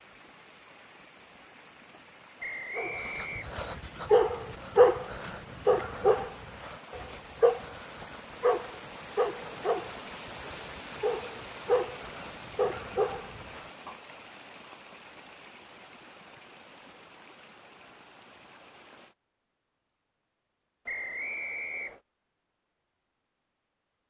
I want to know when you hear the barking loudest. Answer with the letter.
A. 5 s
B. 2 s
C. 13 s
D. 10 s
A.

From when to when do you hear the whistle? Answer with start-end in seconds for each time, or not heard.
2.4-3.5, 20.9-22.0.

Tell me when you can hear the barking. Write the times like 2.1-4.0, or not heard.
2.8-13.9.